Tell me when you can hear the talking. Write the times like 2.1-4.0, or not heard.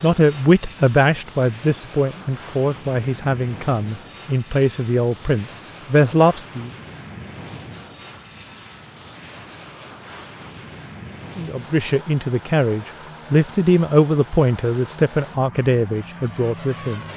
0.0-6.7, 11.3-17.1.